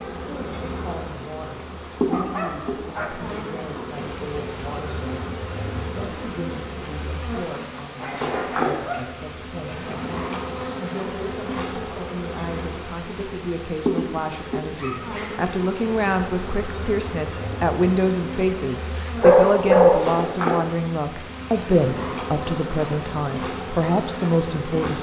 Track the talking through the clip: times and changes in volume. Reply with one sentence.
You can hear the talking from 0.2 to 24.9 s, getting louder.